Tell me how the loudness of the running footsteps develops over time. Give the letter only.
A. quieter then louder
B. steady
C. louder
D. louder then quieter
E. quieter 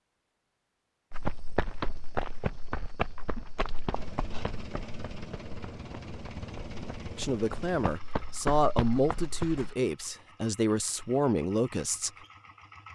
A.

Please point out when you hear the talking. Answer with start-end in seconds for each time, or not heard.
7.2-12.1.